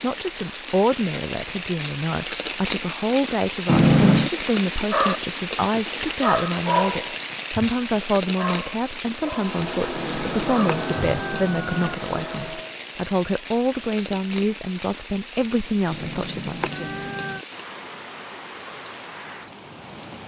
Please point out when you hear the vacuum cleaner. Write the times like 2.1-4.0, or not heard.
9.2-12.8.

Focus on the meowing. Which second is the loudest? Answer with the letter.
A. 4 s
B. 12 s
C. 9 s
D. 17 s
A.